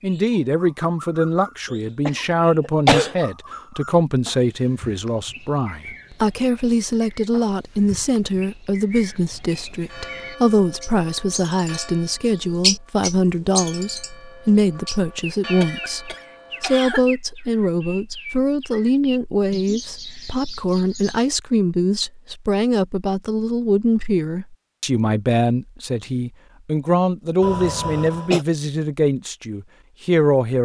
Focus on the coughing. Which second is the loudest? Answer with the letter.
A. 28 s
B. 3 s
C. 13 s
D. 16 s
B.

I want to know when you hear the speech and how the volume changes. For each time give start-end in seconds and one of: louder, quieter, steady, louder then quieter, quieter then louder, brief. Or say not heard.
0.0-30.6 steady.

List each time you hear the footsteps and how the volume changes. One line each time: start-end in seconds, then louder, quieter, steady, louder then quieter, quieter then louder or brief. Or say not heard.
not heard.